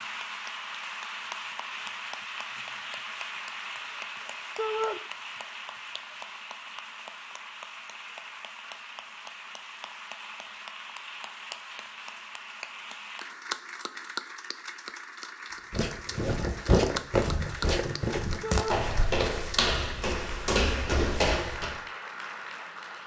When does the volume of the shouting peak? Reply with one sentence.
The loudest moment of the shouting is at 5 seconds.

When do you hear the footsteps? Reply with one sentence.
The footsteps can be heard from 15.7 to 21.8 s.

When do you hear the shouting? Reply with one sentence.
The shouting can be heard from 4.5 to 5.0 s and from 18.4 to 18.9 s.